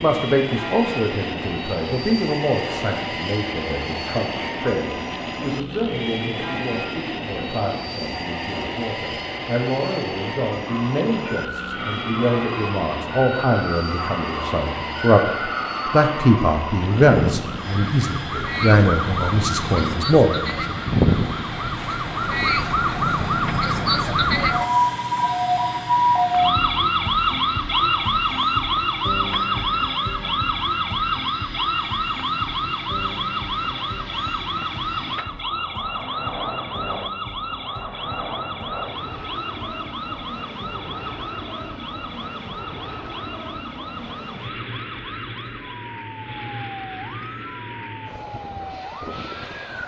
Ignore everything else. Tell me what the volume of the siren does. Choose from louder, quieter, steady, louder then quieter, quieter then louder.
louder then quieter.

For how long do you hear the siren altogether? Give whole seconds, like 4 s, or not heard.
39 s.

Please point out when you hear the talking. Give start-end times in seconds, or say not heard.
0.0-20.7.